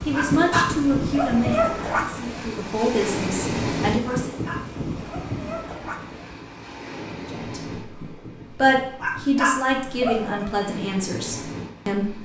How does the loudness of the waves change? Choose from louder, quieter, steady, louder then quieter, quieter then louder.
quieter.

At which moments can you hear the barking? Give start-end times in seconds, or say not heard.
0.1-2.0, 4.0-6.0, 9.0-10.5.